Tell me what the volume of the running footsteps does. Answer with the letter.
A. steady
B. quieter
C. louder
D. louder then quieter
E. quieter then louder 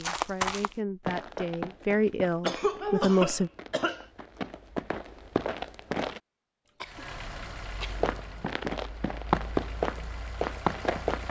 E.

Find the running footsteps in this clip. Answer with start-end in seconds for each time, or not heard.
0.0-6.2, 7.9-11.2.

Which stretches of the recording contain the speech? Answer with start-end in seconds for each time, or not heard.
0.0-3.5.